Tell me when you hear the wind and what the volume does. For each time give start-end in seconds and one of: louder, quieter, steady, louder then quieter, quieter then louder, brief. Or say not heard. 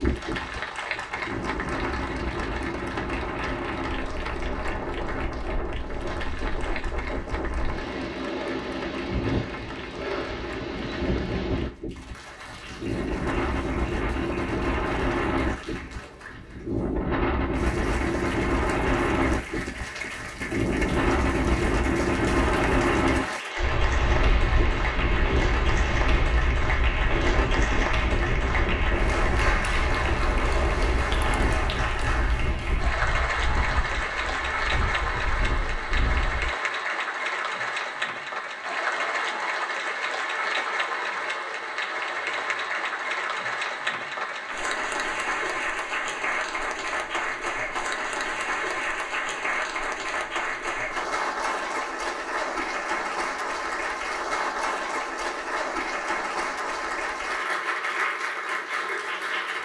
0.0-36.5 louder then quieter.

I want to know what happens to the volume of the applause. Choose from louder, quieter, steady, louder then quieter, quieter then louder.
louder.